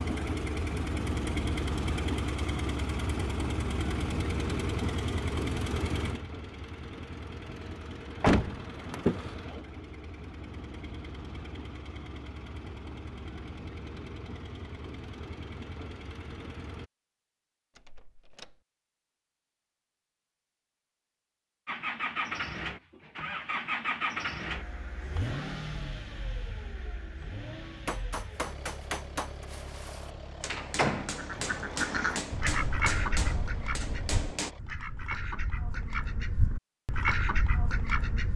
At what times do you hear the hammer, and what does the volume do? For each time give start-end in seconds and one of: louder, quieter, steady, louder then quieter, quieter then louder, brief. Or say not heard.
27.9-34.5 quieter then louder.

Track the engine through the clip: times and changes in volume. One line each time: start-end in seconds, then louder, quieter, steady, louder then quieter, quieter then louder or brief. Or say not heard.
0.0-16.9 quieter
21.6-34.6 quieter.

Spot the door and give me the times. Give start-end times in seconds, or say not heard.
8.2-9.3, 17.8-18.6, 30.5-31.1.